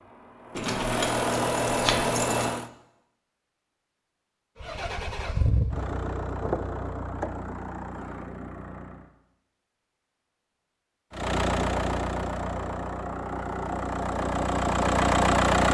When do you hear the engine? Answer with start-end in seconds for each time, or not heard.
0.0-2.7, 4.6-9.1, 11.1-15.7.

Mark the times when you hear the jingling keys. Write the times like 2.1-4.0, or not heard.
0.6-2.5.